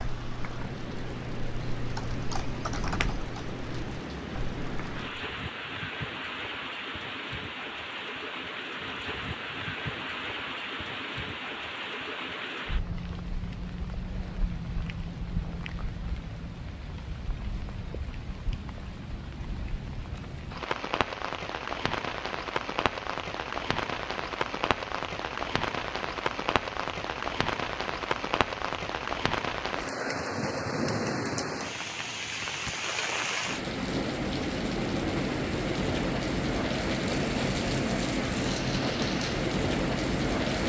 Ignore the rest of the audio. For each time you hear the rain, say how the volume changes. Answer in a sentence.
You can hear the rain from 0.0 to 40.6 s, getting louder.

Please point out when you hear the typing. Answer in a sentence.
The typing can be heard from 0.0 to 5.2 s.